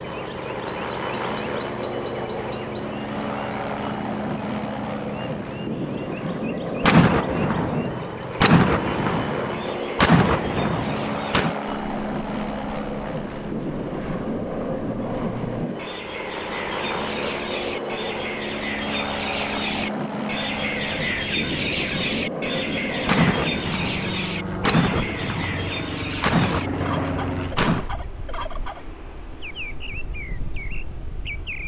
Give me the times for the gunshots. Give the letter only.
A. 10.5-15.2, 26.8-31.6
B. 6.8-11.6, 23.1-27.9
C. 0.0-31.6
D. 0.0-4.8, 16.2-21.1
B.